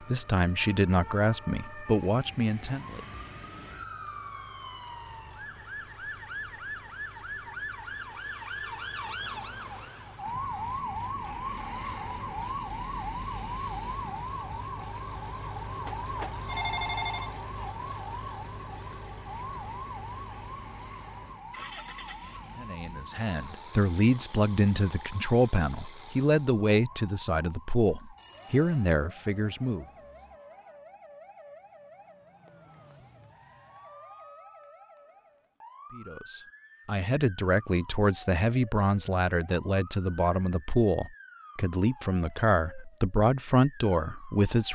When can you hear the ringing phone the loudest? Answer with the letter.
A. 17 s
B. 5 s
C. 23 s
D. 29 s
A.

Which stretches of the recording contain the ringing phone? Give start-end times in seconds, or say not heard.
15.8-17.3, 28.1-28.9.